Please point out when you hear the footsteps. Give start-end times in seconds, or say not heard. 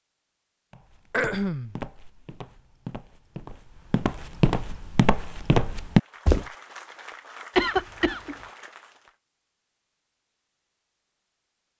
0.7-6.5.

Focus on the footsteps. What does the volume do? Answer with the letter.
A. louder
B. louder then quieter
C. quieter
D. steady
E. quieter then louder
A.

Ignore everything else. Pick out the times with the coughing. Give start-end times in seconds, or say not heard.
1.1-1.8, 7.5-8.3.